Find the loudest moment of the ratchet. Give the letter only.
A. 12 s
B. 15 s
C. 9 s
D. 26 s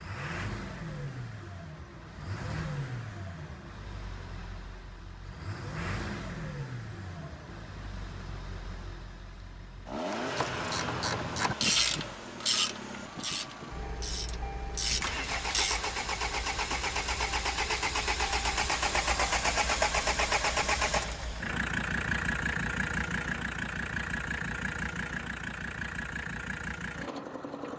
A.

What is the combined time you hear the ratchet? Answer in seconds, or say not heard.
6 s.